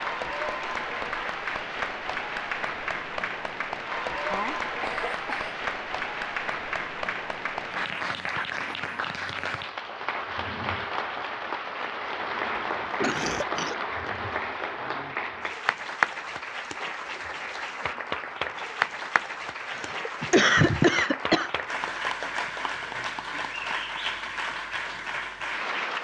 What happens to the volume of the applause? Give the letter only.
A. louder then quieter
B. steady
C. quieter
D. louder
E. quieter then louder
B.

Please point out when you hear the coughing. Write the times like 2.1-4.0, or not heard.
4.3-5.5, 13.0-14.1, 19.7-21.5.